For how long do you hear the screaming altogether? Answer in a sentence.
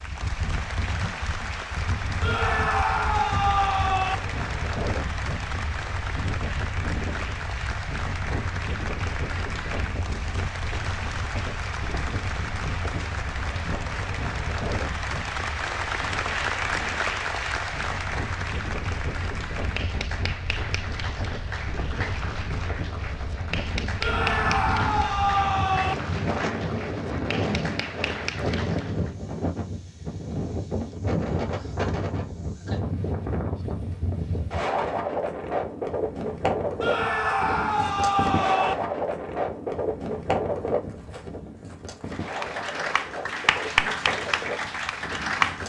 The screaming can be heard for 6 seconds in total.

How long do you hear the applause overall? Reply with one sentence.
The applause can be heard for 33 seconds in total.